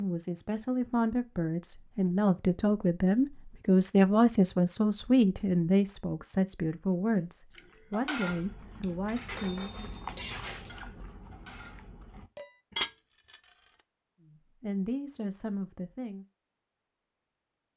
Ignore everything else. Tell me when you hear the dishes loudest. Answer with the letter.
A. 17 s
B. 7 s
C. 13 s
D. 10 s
C.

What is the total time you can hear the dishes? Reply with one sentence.
You can hear the dishes for 6 seconds altogether.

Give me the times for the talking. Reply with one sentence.
The talking can be heard from 0.0 to 9.9 s and from 14.2 to 16.2 s.